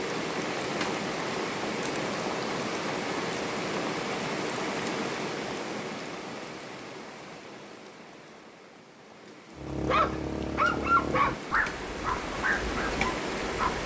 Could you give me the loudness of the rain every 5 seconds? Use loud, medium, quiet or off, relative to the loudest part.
loud, medium, loud.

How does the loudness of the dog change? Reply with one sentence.
The volume of the dog goes down.